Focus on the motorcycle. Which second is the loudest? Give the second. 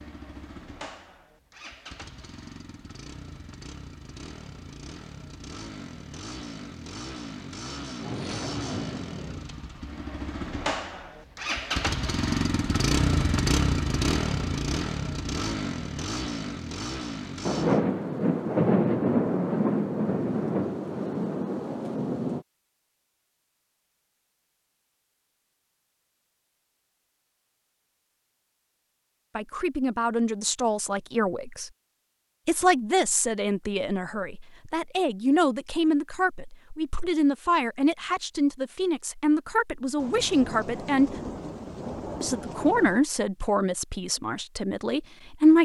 13 s.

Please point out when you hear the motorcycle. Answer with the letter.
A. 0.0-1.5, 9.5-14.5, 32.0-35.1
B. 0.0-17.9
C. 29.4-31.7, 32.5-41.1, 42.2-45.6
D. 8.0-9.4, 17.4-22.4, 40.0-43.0
B.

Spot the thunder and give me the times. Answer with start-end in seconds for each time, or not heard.
8.0-9.4, 17.4-22.4, 40.0-43.0.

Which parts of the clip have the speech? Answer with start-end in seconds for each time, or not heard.
29.4-31.7, 32.5-41.1, 42.2-45.6.